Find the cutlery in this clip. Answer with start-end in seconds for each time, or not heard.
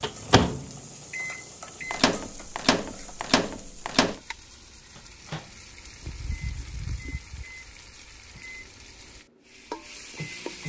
not heard.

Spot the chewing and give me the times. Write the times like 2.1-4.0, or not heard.
5.7-7.5.